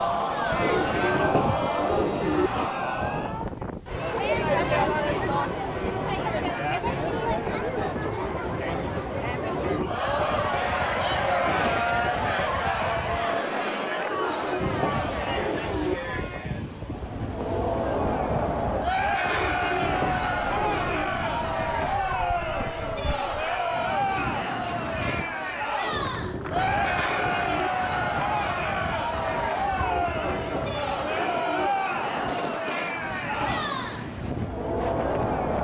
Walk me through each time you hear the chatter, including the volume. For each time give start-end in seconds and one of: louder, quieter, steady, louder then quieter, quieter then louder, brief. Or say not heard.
0.0-35.5 steady.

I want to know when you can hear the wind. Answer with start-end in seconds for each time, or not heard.
0.0-35.5.